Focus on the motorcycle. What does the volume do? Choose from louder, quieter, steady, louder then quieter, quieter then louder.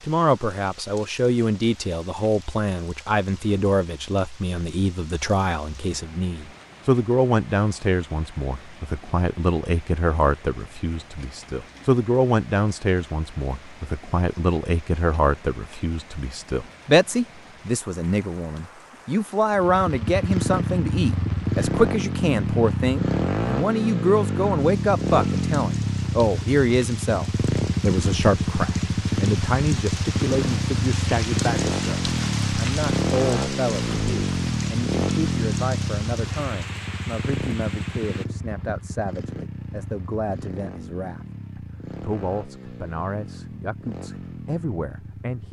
quieter.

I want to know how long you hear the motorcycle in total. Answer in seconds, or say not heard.
26 s.